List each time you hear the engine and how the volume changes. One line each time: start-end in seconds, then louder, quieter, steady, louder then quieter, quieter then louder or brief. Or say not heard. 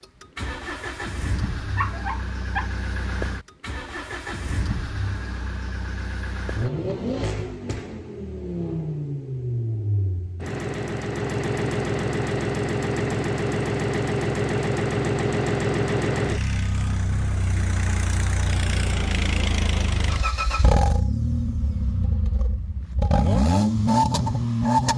0.0-24.9 louder.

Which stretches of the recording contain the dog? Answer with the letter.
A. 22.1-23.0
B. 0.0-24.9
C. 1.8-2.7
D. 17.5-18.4
C.